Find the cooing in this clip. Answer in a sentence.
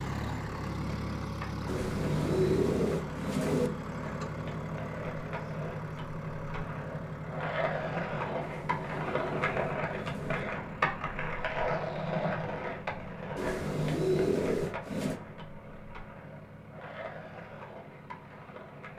You can hear the cooing from 1.6 to 3.7 s, from 8.4 to 10.4 s and from 13.3 to 15.2 s.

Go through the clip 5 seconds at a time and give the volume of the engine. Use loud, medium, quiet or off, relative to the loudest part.
loud, loud, medium, quiet.